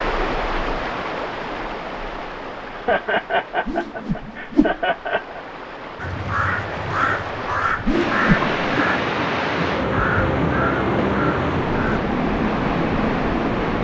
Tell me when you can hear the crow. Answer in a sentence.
You can hear the crow from 6.0 to 12.0 s.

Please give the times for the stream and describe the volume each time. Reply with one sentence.
You can hear the stream from 0.0 to 13.7 s, getting quieter then louder.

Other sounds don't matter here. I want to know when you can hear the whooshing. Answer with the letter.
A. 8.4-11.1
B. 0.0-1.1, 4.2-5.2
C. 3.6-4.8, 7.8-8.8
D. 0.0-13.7
C.